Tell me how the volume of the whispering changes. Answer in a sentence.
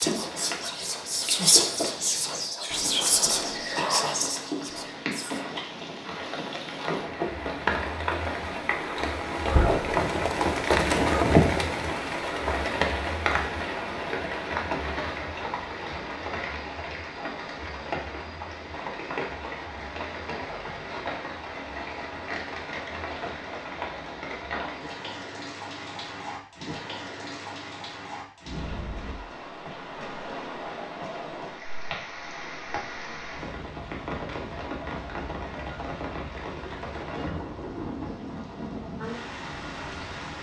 The loudness of the whispering goes up, then down.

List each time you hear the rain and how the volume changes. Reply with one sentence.
The rain can be heard from 0.0 to 40.3 s, getting louder then quieter.